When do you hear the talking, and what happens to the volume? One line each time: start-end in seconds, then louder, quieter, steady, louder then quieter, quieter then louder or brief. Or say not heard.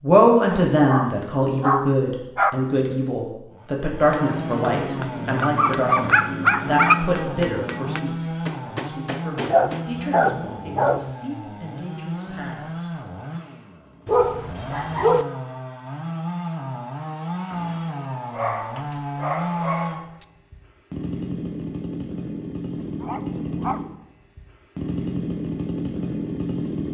0.0-12.9 quieter.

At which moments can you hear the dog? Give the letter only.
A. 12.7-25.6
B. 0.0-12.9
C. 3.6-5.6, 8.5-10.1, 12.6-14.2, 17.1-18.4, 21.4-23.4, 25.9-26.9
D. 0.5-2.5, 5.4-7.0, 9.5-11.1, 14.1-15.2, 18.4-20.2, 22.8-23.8
D.